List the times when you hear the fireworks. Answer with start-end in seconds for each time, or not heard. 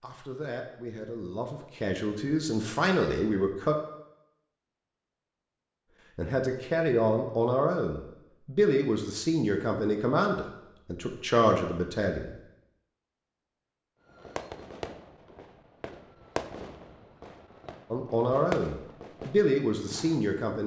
14.1-20.4.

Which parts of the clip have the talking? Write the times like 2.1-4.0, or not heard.
0.0-3.8, 6.2-12.3, 17.9-20.6.